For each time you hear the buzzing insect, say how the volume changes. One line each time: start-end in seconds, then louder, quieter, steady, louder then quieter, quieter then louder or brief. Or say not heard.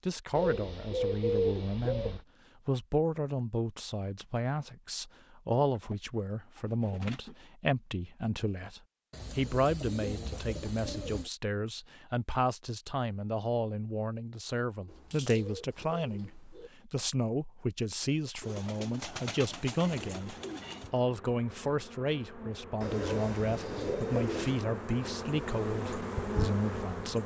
20.1-27.2 louder.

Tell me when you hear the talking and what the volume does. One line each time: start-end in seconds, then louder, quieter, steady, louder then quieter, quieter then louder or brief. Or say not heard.
0.1-27.2 steady.